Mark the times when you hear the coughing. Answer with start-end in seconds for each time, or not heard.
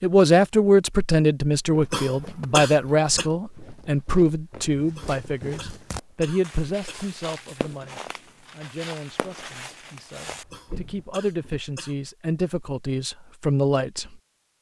1.9-3.2, 5.0-7.2, 10.5-11.9.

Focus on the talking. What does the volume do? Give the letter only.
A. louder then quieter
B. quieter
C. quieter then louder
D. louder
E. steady
C.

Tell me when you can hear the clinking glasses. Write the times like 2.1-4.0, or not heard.
not heard.